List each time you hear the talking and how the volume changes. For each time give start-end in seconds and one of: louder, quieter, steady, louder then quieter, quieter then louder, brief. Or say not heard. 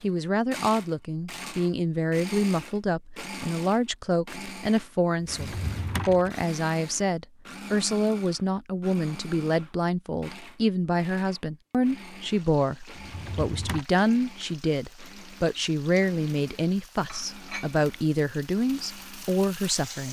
0.0-20.0 steady.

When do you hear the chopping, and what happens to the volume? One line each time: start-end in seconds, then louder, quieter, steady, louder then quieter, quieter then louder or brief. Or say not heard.
not heard.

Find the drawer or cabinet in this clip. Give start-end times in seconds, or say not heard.
5.2-6.3, 12.9-13.8.